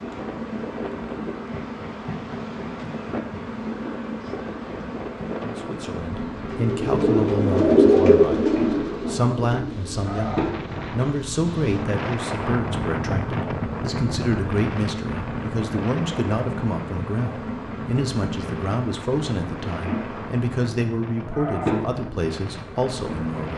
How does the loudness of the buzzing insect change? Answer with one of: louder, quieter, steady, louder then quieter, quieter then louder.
steady.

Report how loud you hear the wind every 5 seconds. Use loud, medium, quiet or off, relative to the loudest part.
medium, medium, loud, medium, medium.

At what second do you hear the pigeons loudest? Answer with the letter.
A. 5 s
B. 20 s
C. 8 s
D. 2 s
C.